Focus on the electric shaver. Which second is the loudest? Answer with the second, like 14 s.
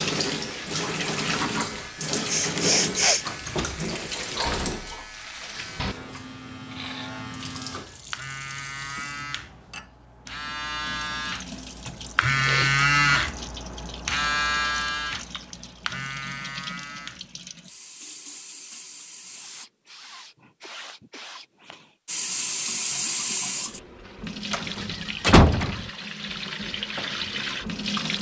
13 s.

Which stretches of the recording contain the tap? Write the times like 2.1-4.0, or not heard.
0.0-19.6, 22.1-28.1.